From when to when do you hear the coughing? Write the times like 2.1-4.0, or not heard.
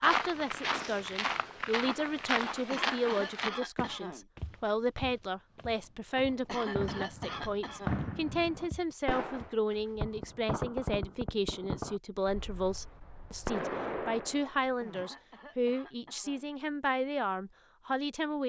2.7-4.2, 6.5-8.1, 14.9-16.5.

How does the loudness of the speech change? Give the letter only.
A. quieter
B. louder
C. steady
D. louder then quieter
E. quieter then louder
C.